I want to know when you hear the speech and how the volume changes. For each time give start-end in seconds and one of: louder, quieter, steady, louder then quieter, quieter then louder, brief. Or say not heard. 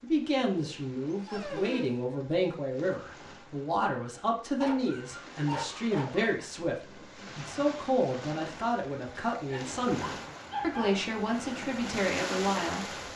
0.0-12.8 steady.